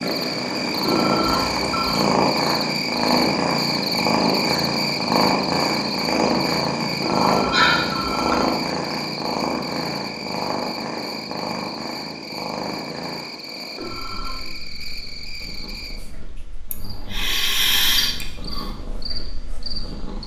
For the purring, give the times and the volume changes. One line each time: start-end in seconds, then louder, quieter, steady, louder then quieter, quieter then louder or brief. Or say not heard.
0.0-20.2 quieter.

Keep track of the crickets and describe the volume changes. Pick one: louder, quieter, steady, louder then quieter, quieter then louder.
quieter.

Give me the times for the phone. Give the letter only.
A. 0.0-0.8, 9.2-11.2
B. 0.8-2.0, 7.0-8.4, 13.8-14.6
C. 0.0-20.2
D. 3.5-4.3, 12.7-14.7
B.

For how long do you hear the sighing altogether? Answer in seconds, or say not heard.
3 s.